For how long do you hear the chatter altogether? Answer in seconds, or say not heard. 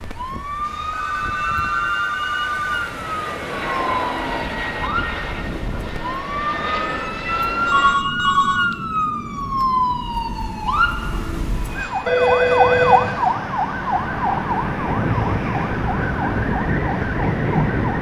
not heard.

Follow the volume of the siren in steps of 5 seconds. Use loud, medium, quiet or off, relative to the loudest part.
medium, loud, loud, loud.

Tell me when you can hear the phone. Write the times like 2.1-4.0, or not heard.
0.6-2.9, 7.7-8.6, 12.1-13.1.